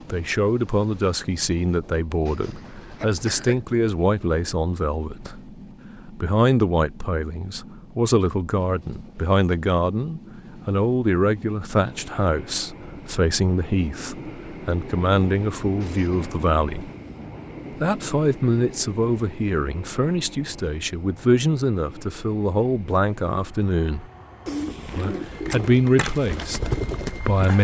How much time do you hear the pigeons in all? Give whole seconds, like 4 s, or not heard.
3 s.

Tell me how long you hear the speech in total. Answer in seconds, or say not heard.
26 s.